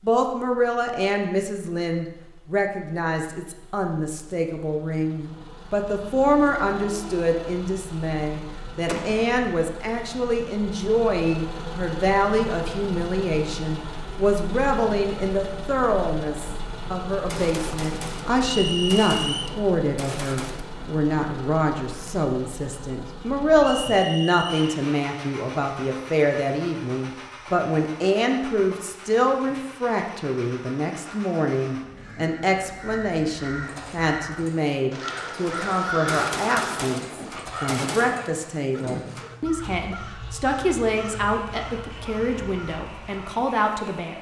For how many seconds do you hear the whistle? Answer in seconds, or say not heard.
2 s.